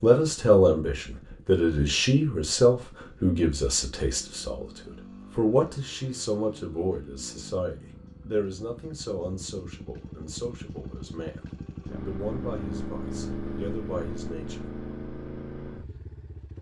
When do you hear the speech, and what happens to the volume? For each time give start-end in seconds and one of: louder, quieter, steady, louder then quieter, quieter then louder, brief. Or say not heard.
0.0-14.8 quieter.